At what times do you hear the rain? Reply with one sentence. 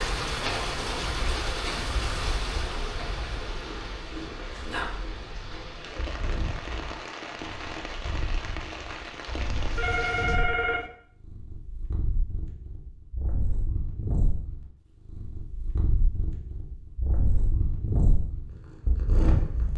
You can hear the rain from 0.0 to 10.4 s.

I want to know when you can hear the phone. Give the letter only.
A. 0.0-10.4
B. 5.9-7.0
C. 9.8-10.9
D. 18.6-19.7
C.